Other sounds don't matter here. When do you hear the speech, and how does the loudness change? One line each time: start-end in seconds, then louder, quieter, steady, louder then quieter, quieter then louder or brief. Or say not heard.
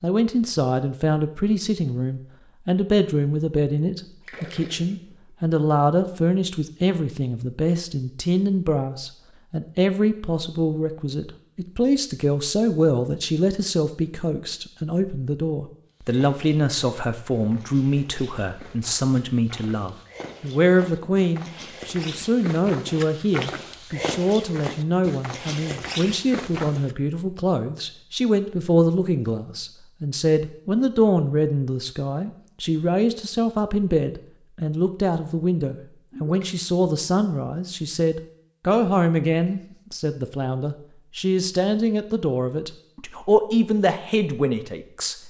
0.0-45.2 steady.